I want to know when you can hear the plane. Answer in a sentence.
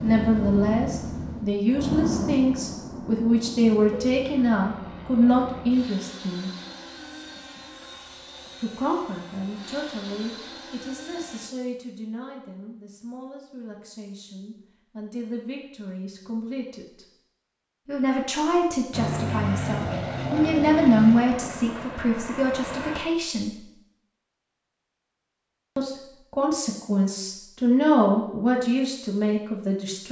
The plane can be heard from 0.0 to 11.5 s and from 18.9 to 23.0 s.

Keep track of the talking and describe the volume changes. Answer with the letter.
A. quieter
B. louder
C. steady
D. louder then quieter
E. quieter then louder
E.